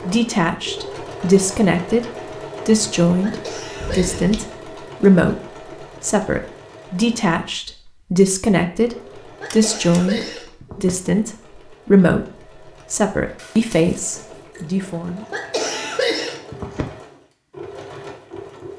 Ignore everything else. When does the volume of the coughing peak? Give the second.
16 s.